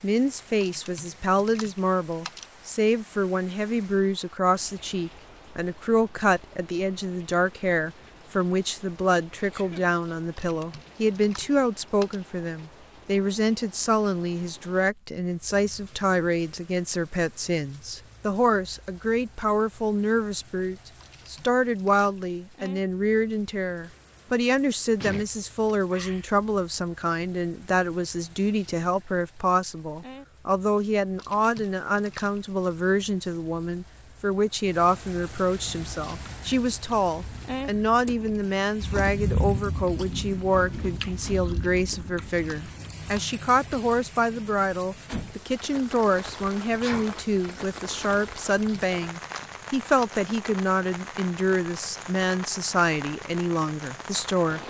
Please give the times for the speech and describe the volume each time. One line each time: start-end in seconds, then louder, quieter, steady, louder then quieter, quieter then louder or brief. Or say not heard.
0.0-54.6 steady.